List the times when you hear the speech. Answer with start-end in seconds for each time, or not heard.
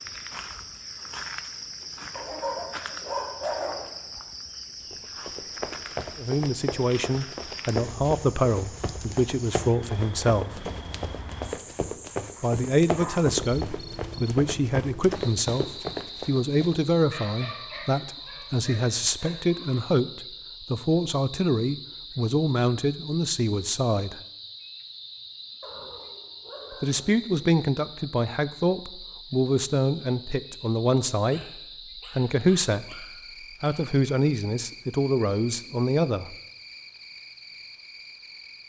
6.2-10.7, 12.4-24.2, 26.8-36.4.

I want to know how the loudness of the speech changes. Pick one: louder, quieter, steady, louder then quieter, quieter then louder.
steady.